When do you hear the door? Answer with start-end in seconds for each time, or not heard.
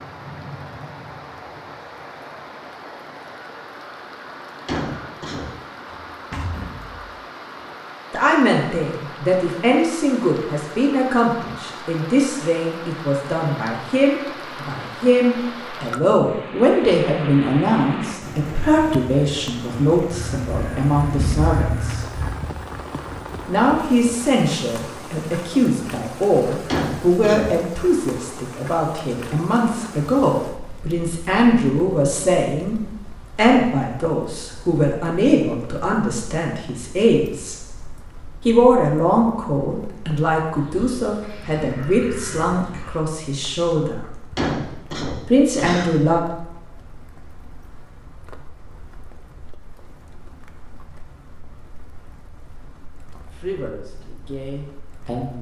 5.8-7.2.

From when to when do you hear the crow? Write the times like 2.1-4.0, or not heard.
20.1-22.4, 40.5-43.0.